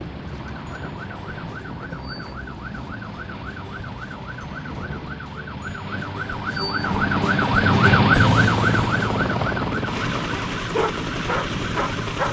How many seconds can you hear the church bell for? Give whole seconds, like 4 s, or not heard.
not heard.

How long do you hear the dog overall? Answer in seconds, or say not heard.
2 s.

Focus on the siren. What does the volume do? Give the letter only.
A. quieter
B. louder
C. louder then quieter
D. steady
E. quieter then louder
C.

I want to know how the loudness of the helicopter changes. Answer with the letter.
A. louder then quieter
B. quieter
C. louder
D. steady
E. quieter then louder
C.